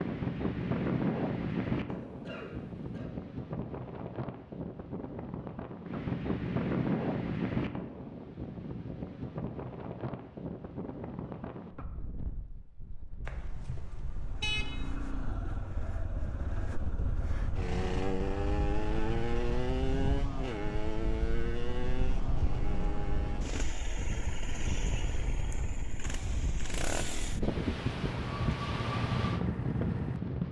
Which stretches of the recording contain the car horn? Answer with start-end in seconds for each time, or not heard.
13.2-14.8.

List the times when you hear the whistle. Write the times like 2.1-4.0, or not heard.
not heard.